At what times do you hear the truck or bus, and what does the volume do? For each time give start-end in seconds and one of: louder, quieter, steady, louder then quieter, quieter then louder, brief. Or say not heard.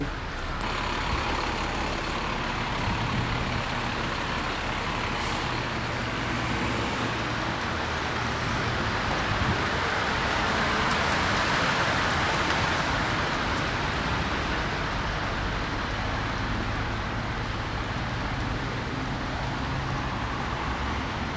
0.0-21.3 steady.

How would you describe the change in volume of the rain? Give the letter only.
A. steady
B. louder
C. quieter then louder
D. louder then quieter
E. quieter
D.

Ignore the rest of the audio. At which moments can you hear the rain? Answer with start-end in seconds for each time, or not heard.
0.0-21.3.